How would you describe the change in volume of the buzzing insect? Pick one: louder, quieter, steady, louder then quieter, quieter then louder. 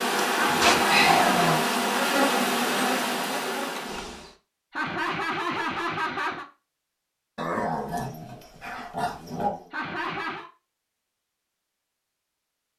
quieter.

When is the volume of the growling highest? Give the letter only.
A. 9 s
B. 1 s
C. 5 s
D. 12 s
B.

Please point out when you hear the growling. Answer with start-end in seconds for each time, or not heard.
0.6-1.6, 7.3-9.7.